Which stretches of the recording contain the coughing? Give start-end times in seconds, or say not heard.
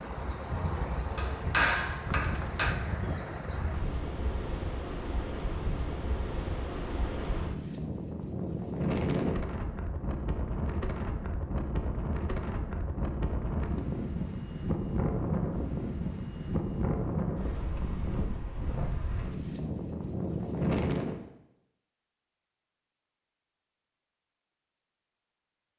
not heard.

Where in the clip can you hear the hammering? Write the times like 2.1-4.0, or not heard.
1.1-2.8.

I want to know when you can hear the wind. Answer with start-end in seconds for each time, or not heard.
0.0-21.2.